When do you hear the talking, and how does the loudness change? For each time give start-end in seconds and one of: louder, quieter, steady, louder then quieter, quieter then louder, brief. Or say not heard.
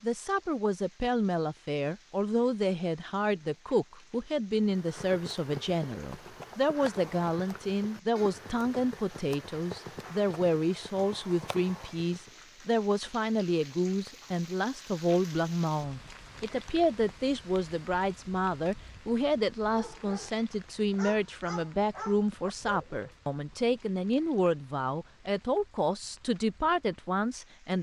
0.0-27.7 steady.